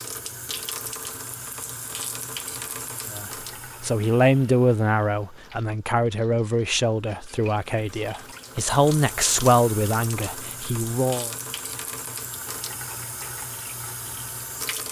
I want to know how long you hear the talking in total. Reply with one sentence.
You can hear the talking for 8 seconds altogether.